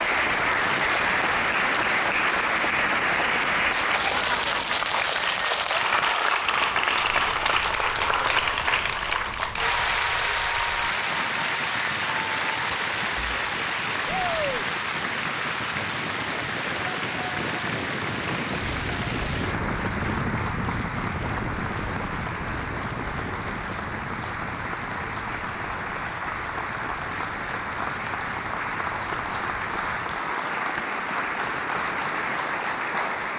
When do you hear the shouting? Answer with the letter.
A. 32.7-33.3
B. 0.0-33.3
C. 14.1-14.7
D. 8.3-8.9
C.